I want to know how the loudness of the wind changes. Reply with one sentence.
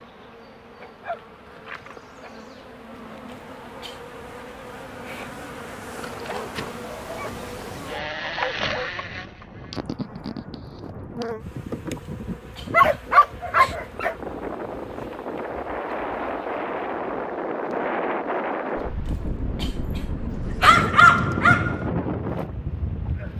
The volume of the wind goes up.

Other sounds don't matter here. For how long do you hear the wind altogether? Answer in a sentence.
You can hear the wind for 16 seconds altogether.